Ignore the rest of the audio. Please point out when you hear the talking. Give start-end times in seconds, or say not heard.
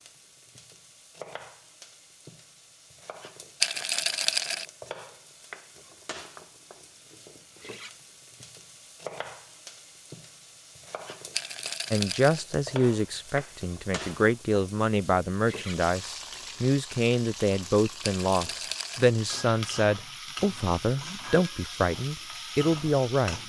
11.9-23.4.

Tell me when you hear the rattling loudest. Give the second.
4 s.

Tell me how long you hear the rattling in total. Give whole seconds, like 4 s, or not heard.
3 s.